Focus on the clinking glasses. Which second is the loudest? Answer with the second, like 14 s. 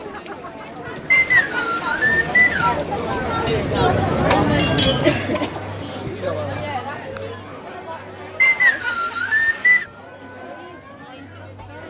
5 s.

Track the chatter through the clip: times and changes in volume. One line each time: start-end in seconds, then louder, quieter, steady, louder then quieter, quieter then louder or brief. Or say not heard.
0.0-11.8 louder then quieter.